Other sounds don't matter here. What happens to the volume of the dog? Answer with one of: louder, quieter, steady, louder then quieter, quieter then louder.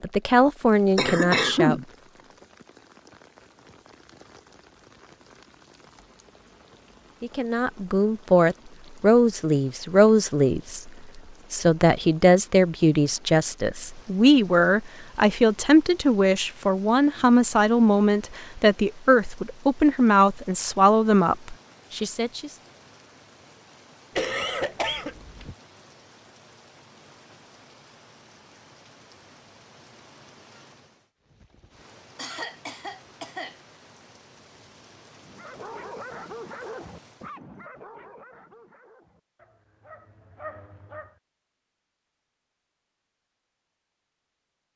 quieter then louder.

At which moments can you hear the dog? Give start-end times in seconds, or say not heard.
35.1-41.1.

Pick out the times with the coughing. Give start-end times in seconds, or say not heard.
0.9-1.9, 24.1-25.6, 32.1-33.5.